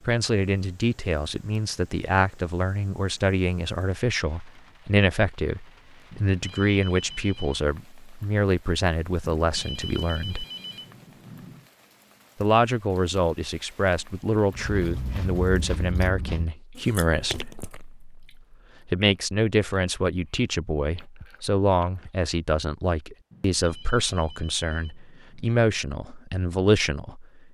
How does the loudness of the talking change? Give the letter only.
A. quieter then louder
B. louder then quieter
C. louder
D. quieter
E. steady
E.